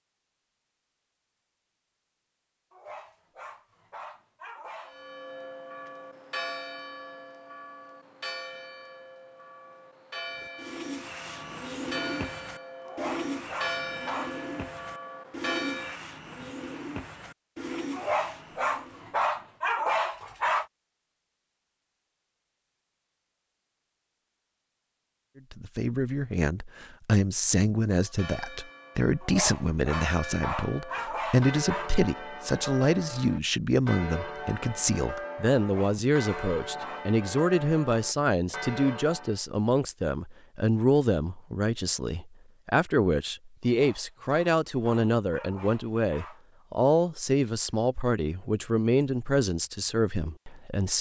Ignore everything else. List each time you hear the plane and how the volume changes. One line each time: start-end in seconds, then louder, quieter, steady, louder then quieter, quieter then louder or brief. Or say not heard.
not heard.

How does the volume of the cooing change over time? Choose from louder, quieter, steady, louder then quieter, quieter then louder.
steady.